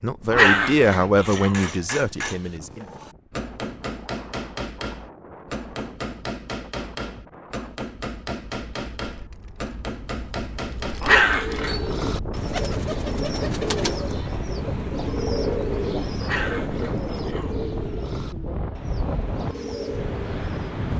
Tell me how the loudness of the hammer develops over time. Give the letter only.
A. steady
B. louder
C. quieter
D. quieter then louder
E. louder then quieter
A.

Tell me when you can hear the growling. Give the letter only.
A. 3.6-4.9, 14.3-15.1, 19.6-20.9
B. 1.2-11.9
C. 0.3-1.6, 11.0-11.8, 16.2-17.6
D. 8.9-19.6
C.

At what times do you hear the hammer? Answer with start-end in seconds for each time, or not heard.
1.2-11.9.